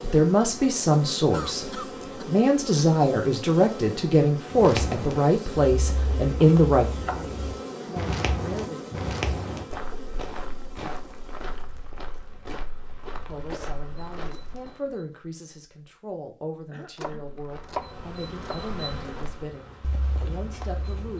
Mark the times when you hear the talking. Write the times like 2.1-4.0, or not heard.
0.0-8.9, 13.2-21.1.